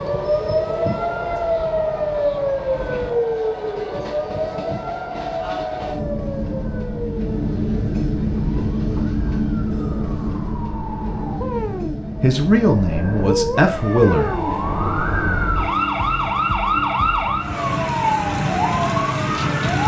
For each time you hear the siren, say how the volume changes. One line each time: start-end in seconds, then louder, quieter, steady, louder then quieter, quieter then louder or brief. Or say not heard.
0.0-19.8 quieter then louder.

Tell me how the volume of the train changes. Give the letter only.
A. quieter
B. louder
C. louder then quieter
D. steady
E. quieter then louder
C.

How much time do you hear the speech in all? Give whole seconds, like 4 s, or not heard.
2 s.